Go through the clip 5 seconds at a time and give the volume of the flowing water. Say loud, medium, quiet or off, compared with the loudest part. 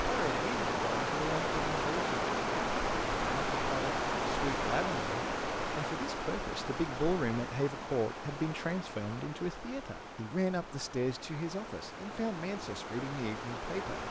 loud, medium, medium.